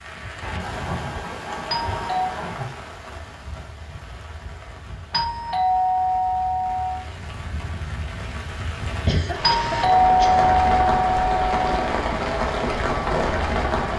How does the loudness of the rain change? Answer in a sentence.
The volume of the rain goes down, then up.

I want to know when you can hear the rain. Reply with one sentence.
The rain can be heard from 0.0 to 13.9 s.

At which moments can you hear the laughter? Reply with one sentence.
You can hear the laughter from 0.4 to 2.7 s and from 9.0 to 10.5 s.